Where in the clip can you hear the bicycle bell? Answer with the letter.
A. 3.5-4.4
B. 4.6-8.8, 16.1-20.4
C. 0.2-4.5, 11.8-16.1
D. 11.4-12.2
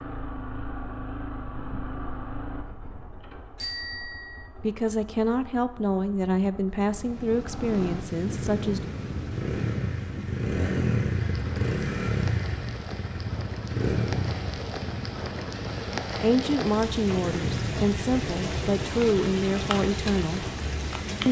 A.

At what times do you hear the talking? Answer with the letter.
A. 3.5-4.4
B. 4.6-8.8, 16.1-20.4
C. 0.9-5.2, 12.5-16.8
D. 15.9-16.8
B.